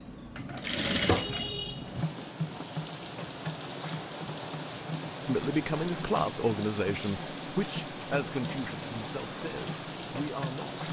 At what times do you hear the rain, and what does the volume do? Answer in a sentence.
The rain can be heard from 1.8 to 10.8 s, at a steady volume.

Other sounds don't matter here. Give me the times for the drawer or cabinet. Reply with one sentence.
The drawer or cabinet can't be heard in this clip.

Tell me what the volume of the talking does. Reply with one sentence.
The volume of the talking goes down.